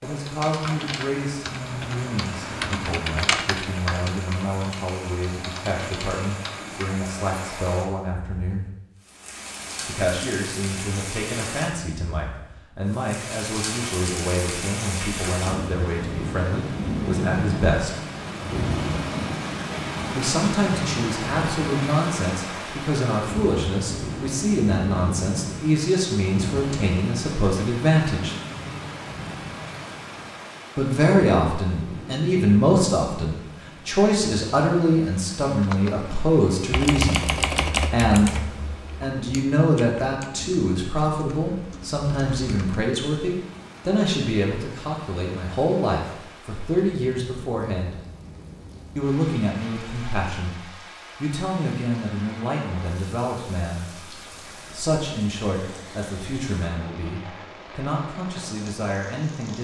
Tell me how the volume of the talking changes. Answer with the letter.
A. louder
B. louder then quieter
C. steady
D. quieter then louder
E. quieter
B.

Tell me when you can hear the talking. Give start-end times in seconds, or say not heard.
0.0-8.7, 9.8-18.0, 20.1-28.4, 30.8-48.0, 49.0-59.5.